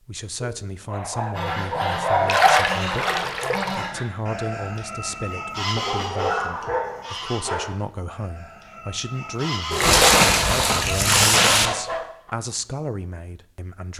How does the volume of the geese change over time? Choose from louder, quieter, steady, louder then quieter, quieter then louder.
quieter.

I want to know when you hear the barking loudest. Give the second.
2 s.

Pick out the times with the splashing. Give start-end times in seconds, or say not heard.
2.2-3.8, 9.7-11.7.